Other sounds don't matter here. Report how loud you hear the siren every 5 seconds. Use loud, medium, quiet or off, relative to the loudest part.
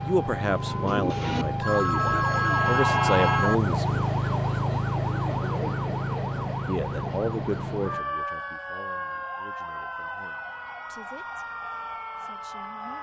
loud, loud, medium.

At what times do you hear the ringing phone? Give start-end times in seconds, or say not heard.
1.6-3.5.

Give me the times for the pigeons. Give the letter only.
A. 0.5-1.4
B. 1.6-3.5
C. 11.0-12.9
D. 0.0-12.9
A.